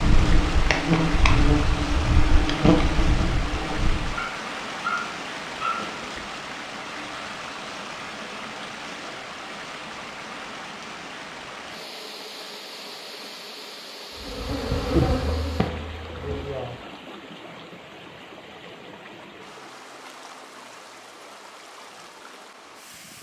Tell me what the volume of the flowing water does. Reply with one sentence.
The loudness of the flowing water goes down.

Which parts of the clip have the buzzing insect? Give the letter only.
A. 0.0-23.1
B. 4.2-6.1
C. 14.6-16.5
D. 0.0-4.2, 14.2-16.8
D.